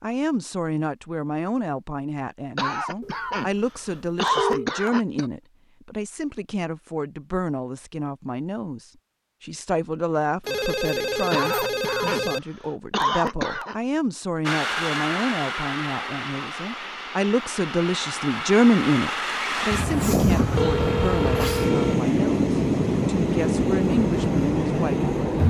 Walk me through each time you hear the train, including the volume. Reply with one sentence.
The train can be heard from 14.4 to 25.4 s, getting louder.